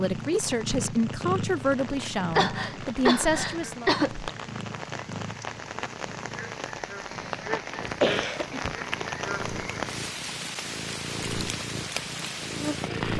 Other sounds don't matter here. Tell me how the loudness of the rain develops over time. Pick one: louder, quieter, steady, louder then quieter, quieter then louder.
louder.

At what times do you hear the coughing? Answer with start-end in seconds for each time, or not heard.
2.3-4.3, 7.2-8.8.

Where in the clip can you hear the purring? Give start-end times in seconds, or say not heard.
0.0-13.1.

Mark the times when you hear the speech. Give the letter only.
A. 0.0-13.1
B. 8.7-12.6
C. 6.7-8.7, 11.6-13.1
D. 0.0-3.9
D.